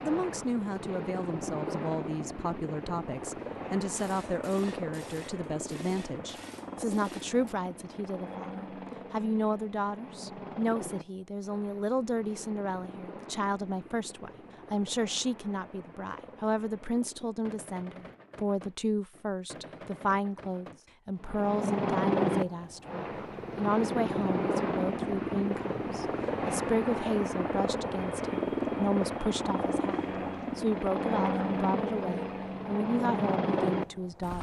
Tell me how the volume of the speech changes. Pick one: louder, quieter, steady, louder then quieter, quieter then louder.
steady.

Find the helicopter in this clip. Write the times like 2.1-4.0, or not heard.
0.0-17.6, 21.1-34.3.